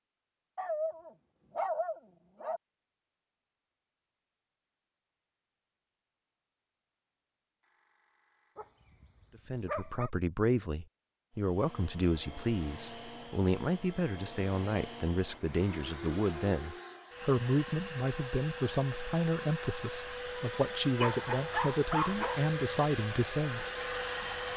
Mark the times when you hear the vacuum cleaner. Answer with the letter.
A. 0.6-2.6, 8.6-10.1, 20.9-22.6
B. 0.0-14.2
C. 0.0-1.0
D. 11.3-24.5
D.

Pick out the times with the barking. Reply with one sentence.
The barking can be heard from 0.6 to 2.6 s, from 8.6 to 10.1 s and from 20.9 to 22.6 s.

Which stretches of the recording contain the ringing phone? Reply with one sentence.
You can hear the ringing phone from 7.6 to 8.6 s.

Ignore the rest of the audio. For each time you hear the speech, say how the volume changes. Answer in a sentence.
You can hear the speech from 9.4 to 23.6 s, at a steady volume.